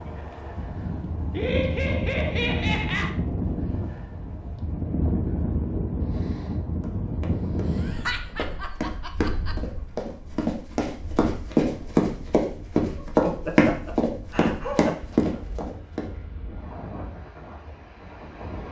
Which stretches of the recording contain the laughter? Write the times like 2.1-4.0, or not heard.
1.3-3.1, 7.7-9.6, 12.9-14.9.